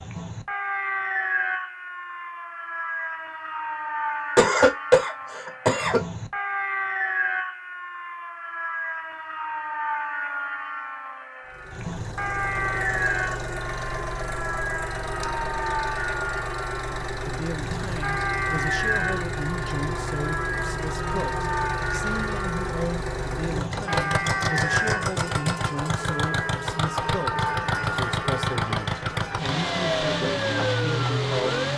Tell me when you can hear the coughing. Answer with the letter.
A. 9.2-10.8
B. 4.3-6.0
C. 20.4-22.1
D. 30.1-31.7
B.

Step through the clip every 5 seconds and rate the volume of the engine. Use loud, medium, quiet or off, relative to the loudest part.
off, off, medium, medium, loud, loud, loud.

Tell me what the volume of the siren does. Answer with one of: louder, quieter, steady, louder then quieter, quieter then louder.
steady.